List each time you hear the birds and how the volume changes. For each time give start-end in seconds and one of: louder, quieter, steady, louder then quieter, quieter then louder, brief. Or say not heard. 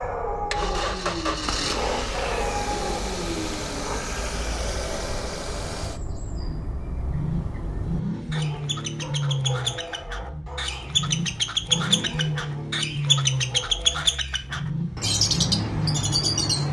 0.0-16.6 louder.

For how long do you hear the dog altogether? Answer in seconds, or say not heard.
10 s.